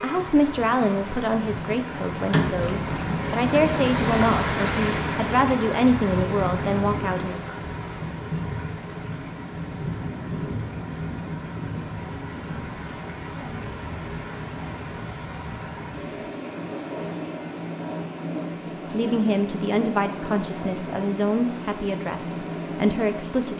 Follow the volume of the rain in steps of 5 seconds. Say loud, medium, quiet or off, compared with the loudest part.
loud, loud, medium, medium, medium.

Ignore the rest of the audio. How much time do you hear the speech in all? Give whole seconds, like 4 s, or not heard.
12 s.